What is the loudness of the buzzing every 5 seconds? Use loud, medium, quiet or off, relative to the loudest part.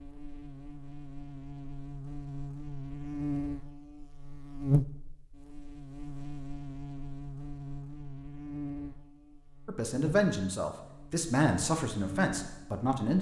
loud, medium, loud.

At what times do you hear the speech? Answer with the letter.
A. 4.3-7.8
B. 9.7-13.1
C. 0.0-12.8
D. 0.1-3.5
B.